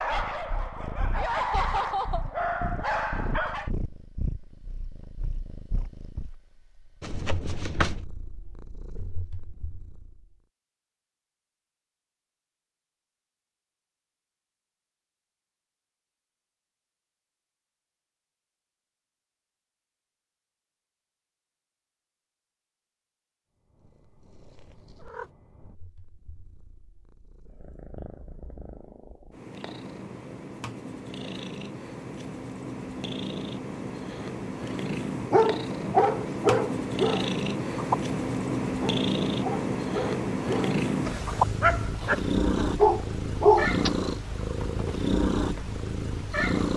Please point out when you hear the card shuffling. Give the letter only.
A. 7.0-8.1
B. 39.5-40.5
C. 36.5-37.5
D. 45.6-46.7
A.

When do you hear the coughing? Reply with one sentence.
You can't hear the coughing here.